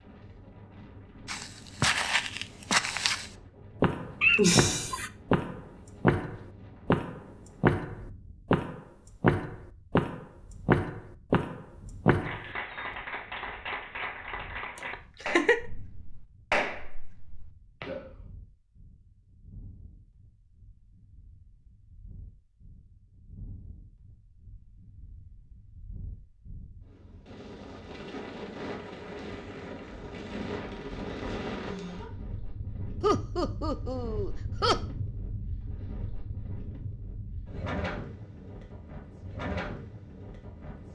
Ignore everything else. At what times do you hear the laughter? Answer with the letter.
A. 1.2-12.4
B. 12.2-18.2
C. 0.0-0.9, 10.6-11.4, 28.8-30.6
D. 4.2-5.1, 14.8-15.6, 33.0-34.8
D.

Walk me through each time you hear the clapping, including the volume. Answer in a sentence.
You can hear the clapping from 12.2 to 18.2 s, getting louder then quieter.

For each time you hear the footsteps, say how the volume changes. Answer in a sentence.
The footsteps can be heard from 1.2 to 12.4 s, at a steady volume.